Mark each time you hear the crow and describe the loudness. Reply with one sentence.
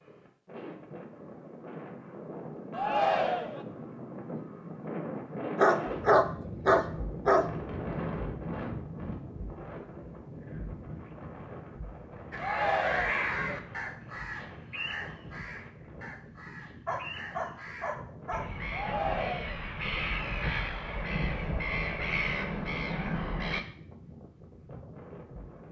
You can hear the crow from 12.3 to 23.6 s, getting quieter then louder.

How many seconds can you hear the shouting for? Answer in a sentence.
The shouting can be heard for 3 seconds in total.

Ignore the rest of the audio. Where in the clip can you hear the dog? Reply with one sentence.
You can hear the dog from 5.5 to 7.5 s and from 16.9 to 18.4 s.